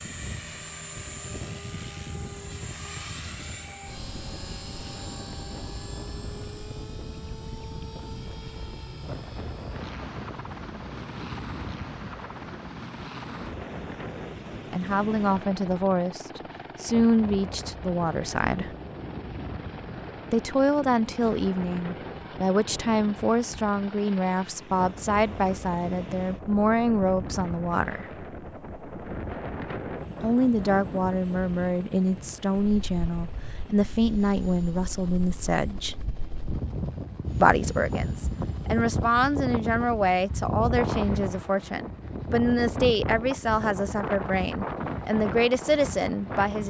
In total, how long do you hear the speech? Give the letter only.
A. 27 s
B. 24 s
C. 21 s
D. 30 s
A.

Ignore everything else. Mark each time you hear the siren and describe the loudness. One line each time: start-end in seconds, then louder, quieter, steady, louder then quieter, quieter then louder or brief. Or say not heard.
not heard.